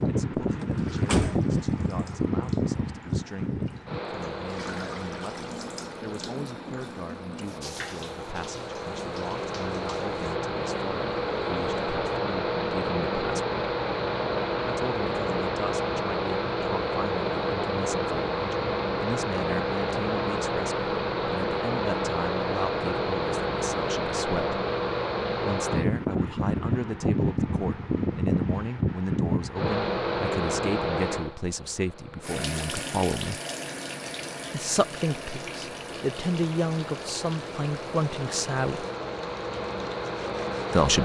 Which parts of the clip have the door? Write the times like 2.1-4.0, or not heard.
0.6-1.5.